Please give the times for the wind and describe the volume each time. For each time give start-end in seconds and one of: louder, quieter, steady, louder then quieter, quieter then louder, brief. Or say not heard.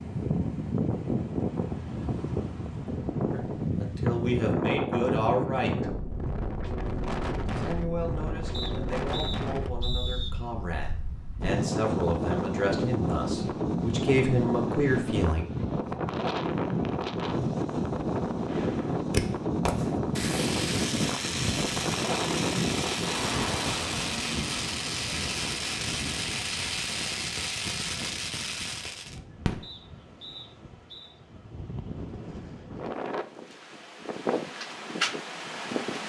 0.0-36.0 quieter.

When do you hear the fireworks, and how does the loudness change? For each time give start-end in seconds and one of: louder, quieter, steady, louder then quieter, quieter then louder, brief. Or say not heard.
18.4-29.6 steady.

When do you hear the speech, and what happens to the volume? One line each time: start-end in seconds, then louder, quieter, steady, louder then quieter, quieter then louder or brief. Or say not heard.
3.3-5.8 brief
7.5-15.4 louder.